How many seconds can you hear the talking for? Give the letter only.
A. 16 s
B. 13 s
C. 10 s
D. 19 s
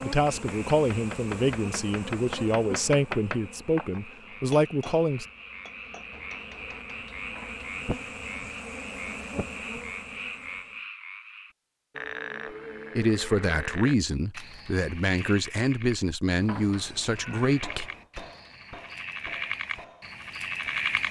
C.